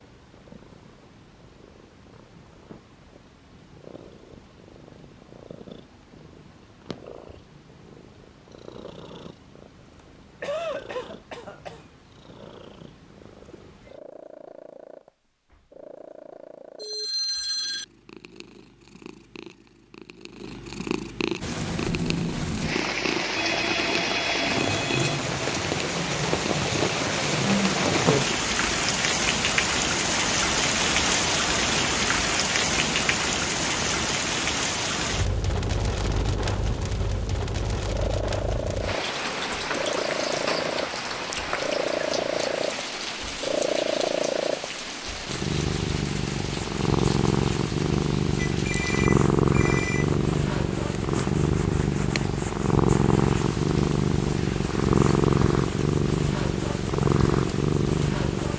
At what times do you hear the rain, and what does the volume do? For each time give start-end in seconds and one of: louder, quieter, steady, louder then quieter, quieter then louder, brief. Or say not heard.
21.4-58.5 quieter.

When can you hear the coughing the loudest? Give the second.
11 s.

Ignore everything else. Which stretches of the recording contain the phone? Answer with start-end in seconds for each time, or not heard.
16.8-17.9, 23.4-25.3, 48.5-50.1.